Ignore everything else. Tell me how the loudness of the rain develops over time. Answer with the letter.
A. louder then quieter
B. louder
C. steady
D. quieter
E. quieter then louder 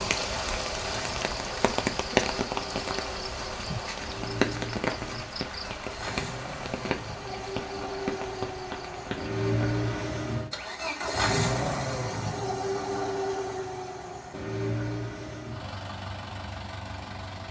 D.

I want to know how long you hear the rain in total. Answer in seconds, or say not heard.
10 s.